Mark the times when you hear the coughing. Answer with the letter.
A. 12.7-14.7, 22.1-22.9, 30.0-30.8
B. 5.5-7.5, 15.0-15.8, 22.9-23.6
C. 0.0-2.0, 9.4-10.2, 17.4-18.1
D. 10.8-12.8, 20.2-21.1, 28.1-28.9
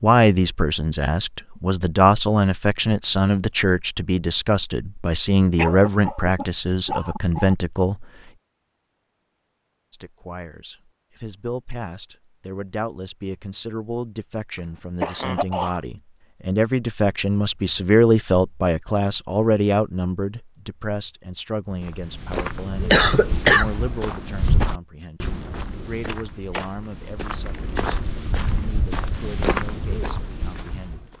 B.